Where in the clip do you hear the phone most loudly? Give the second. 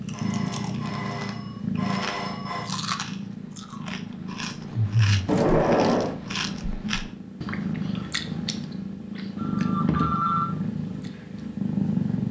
10 s.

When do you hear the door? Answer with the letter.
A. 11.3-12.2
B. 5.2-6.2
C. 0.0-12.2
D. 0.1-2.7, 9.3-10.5
B.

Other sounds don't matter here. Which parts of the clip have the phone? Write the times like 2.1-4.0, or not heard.
0.1-2.7, 9.3-10.5.